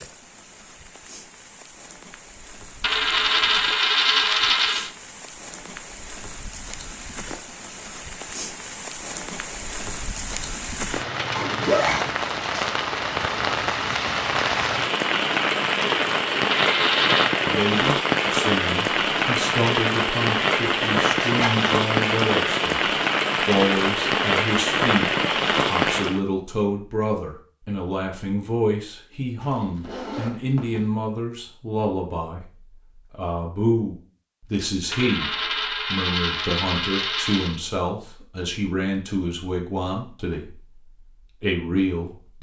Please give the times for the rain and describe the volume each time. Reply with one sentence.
You can hear the rain from 0.0 to 26.2 s, getting louder.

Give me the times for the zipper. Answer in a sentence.
You can hear the zipper from 11.3 to 12.2 s, from 21.2 to 21.6 s and from 29.4 to 30.9 s.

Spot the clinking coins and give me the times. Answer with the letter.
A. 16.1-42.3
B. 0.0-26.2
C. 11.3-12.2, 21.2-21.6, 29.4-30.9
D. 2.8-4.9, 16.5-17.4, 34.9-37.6
D.